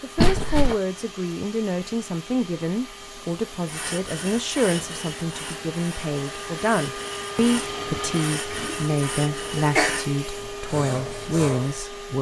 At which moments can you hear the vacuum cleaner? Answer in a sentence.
You can hear the vacuum cleaner from 0.0 to 12.1 s.